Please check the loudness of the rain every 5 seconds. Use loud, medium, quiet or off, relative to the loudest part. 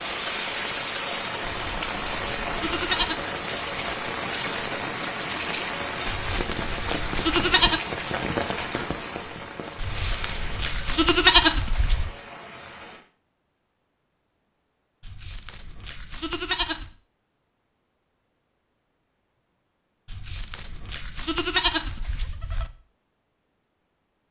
loud, loud, medium, off, off.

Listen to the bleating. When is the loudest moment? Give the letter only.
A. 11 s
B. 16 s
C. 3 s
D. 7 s
A.